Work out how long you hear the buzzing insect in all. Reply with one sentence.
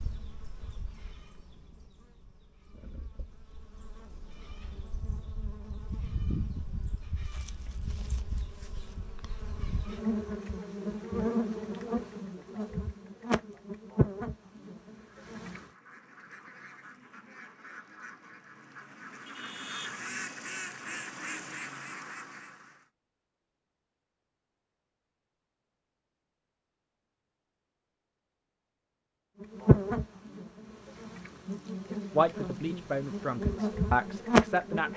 You can hear the buzzing insect for 21 seconds altogether.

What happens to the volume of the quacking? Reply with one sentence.
The volume of the quacking goes up.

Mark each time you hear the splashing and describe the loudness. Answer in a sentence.
The splashing can't be heard in this clip.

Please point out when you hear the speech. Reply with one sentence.
You can hear the speech from 32.1 to 34.9 s.